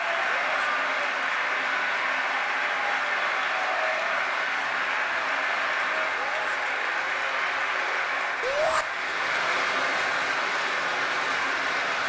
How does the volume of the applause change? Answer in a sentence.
The loudness of the applause stays about the same.